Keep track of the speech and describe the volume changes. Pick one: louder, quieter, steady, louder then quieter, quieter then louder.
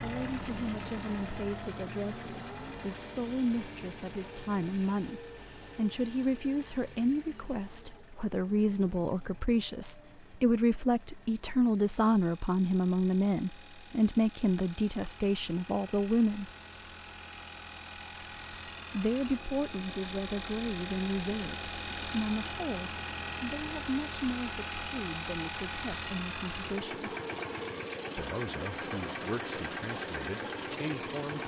louder then quieter.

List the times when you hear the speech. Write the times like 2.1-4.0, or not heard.
0.0-16.5, 18.9-27.1, 28.1-31.4.